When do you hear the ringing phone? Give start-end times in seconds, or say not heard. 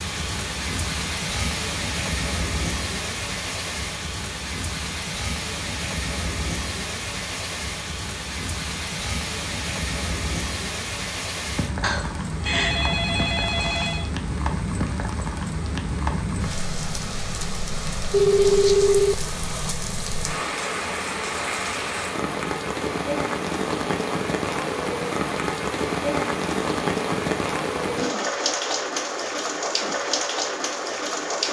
11.8-14.1, 18.1-19.8.